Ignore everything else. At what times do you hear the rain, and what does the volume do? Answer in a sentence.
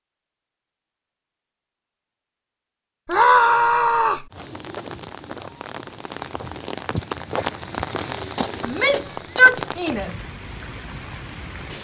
You can hear the rain from 4.3 to 11.7 s, getting louder then quieter.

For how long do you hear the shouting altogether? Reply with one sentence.
The shouting can be heard for 3 seconds in total.